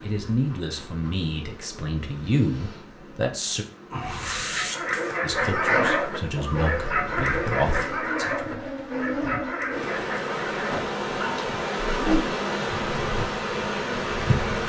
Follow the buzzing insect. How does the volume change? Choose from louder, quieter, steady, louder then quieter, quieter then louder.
louder.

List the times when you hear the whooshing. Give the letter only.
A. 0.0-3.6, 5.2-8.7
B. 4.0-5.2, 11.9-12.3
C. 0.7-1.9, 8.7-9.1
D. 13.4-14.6
B.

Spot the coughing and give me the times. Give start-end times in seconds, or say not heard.
5.5-6.7.